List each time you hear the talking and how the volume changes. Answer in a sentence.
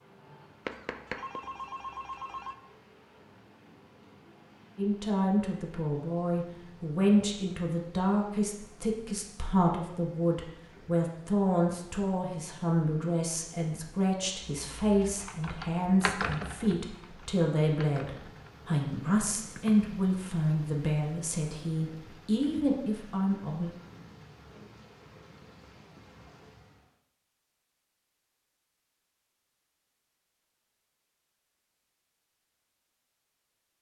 The talking can be heard from 4.8 to 23.7 s, at a steady volume.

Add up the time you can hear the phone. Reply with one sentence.
The phone can be heard for 2 seconds in total.